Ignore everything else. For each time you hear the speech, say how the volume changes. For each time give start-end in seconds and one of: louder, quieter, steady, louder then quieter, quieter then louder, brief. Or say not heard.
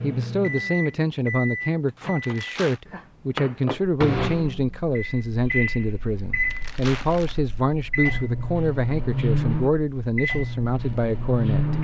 0.0-11.7 steady.